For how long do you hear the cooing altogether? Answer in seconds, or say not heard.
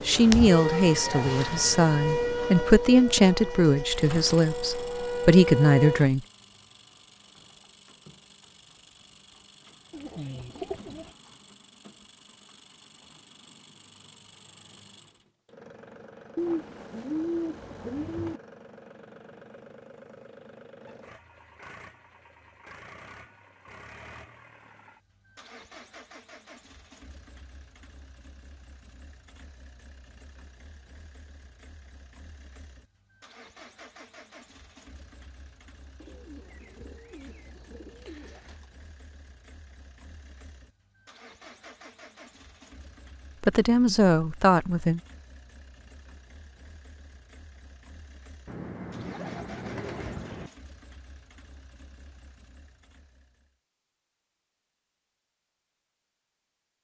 8 s.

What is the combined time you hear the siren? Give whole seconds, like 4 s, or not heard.
6 s.